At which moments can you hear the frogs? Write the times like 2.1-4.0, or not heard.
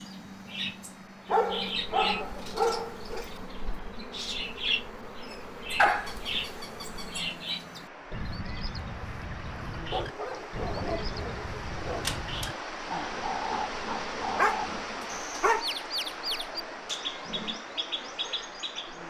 not heard.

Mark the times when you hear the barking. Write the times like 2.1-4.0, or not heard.
1.2-3.2, 5.8-7.2, 9.9-12.5, 14.3-15.7.